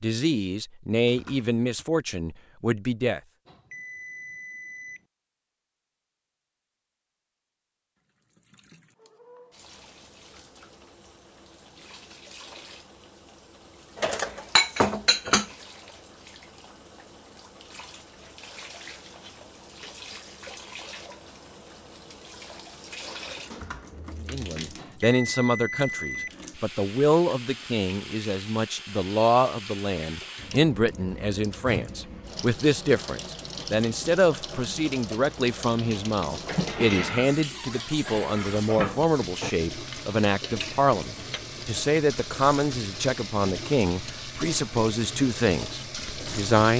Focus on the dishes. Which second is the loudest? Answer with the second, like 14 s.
15 s.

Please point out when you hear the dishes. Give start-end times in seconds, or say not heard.
14.0-15.4, 36.5-41.4.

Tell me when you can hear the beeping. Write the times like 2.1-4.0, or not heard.
3.5-5.0, 24.8-26.4.